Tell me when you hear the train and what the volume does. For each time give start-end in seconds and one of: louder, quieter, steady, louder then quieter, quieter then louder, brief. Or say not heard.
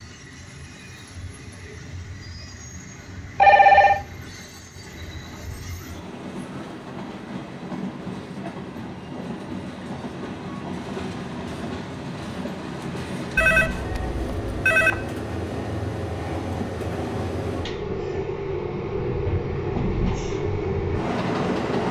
0.0-21.8 louder.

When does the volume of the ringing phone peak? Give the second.
4 s.